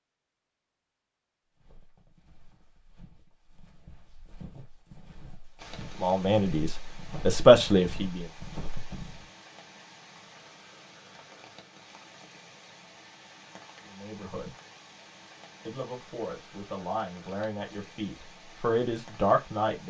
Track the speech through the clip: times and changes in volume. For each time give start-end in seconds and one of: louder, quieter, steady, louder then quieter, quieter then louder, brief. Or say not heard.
6.0-8.2 brief
13.8-14.6 brief
15.7-19.8 louder.